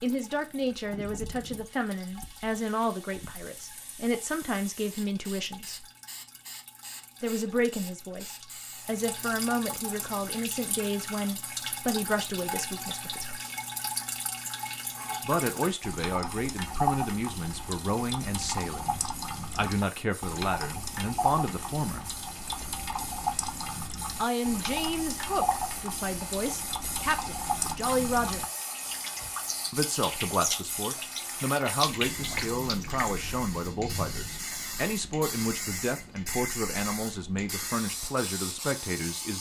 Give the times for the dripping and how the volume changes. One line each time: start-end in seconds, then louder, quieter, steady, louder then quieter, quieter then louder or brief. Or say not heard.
0.0-33.2 louder.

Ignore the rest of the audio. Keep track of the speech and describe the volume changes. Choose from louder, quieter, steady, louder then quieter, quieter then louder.
steady.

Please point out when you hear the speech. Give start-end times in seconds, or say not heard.
0.0-5.8, 7.2-13.4, 15.2-22.1, 24.1-28.4, 29.7-39.3.